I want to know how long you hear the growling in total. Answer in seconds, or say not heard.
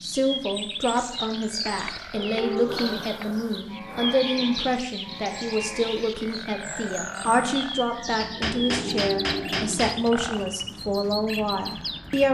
3 s.